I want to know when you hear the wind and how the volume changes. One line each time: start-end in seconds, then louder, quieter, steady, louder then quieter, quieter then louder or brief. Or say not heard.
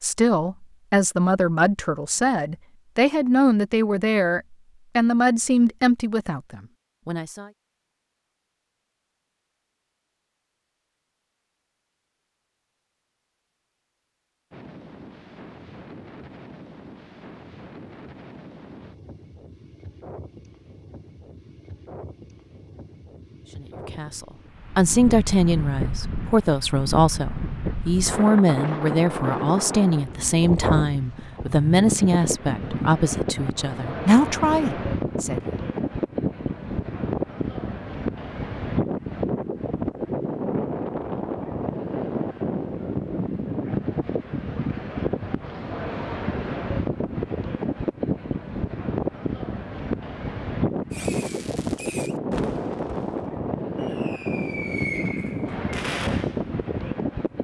14.5-57.3 louder.